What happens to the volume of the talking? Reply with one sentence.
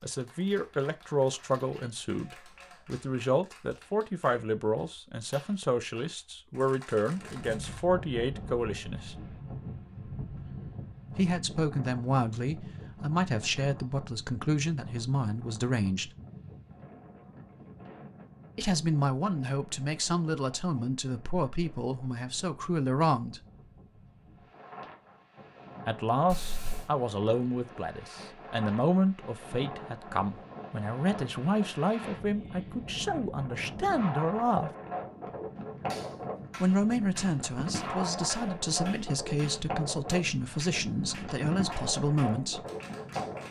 The loudness of the talking stays about the same.